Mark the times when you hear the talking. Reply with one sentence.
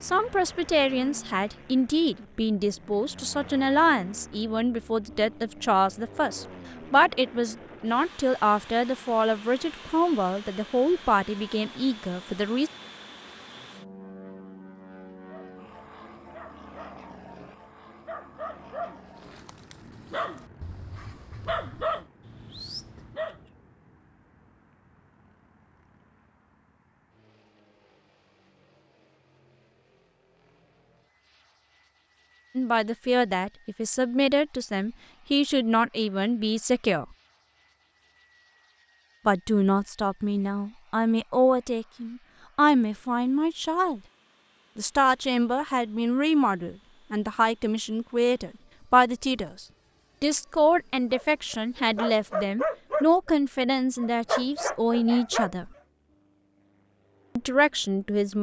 You can hear the talking from 0.0 to 12.7 s, from 32.5 to 37.0 s, from 39.2 to 44.0 s, from 44.8 to 55.7 s and from 57.4 to 58.3 s.